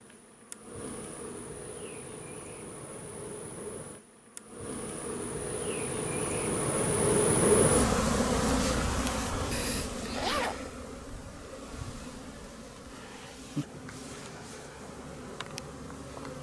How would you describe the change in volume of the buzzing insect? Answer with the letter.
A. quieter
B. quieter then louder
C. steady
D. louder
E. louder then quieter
E.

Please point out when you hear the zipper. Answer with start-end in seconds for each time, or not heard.
10.1-10.7.